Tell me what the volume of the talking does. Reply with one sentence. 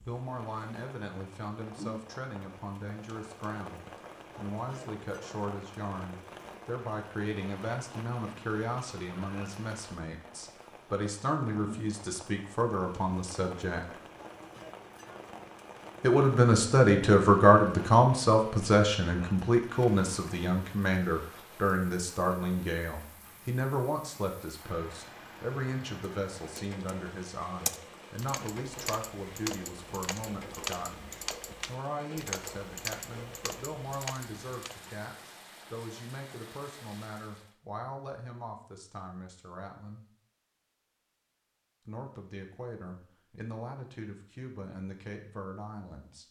The volume of the talking goes up, then down.